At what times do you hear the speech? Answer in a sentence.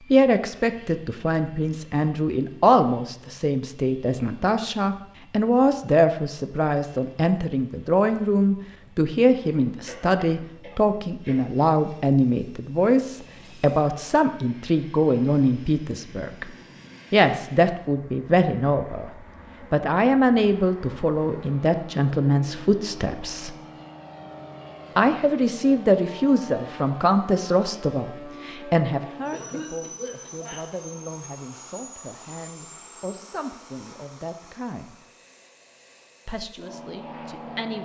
The speech can be heard from 0.1 to 16.5 s, from 17.1 to 23.6 s, from 24.9 to 35.0 s and from 36.2 to 37.8 s.